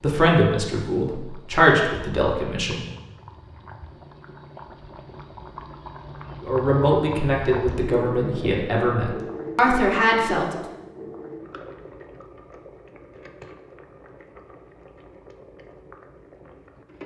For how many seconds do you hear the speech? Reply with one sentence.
You can hear the speech for 7 seconds altogether.